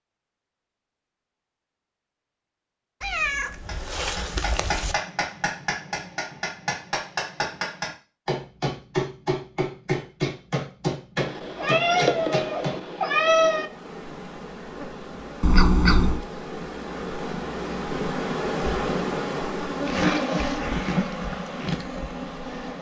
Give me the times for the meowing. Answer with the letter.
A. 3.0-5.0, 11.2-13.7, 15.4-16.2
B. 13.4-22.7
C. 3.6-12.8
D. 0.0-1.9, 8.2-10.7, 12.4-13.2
A.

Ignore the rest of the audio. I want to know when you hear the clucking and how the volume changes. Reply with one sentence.
The clucking can't be heard in this clip.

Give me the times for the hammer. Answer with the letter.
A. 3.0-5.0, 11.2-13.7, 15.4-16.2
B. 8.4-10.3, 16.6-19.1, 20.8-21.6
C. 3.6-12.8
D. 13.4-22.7
C.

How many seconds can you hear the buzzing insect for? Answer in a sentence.
You can hear the buzzing insect for 9 seconds altogether.